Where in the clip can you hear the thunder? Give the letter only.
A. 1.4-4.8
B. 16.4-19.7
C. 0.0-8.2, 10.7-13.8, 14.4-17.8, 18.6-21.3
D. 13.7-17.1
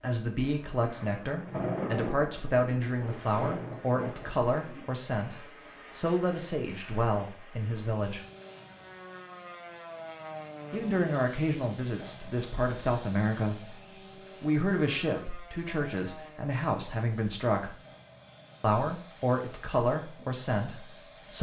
A.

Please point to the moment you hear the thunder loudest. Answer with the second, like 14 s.
2 s.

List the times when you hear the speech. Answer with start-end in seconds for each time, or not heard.
0.0-8.2, 10.7-13.8, 14.4-17.8, 18.6-21.3.